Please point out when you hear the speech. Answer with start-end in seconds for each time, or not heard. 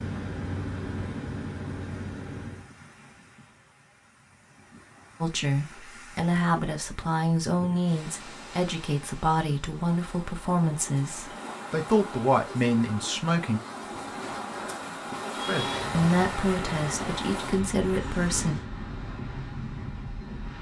5.2-13.6, 15.4-18.6.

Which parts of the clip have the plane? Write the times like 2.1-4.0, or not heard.
0.0-2.7, 15.3-18.6.